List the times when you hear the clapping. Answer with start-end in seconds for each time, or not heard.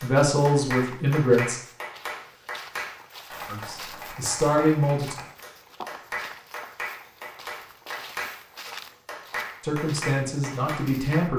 0.0-11.3.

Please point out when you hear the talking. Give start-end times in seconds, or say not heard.
0.0-1.6, 3.5-5.2, 9.6-11.3.